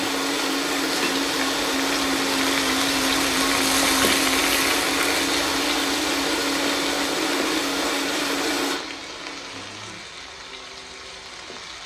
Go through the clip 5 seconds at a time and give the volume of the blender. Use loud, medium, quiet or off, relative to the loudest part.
loud, loud, quiet.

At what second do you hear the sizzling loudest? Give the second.
4 s.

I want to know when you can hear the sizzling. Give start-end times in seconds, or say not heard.
0.0-11.8.